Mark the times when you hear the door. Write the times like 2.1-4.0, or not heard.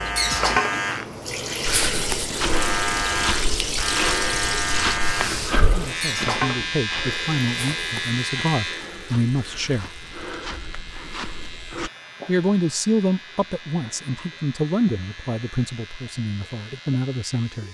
not heard.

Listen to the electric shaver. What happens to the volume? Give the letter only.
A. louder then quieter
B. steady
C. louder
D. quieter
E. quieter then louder
D.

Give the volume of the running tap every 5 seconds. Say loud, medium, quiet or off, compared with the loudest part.
loud, medium, quiet, quiet.